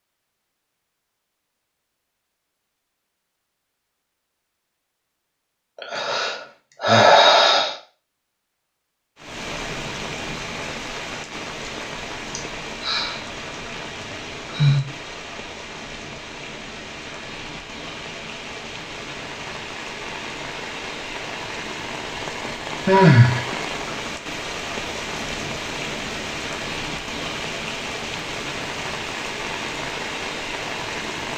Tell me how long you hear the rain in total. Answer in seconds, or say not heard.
22 s.